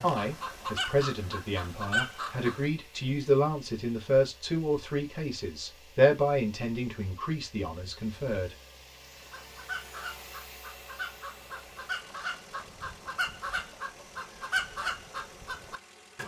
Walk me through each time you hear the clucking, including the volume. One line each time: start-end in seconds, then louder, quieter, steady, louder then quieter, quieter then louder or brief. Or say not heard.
0.0-2.6 brief
9.2-16.2 louder.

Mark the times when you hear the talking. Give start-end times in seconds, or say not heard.
0.0-8.6.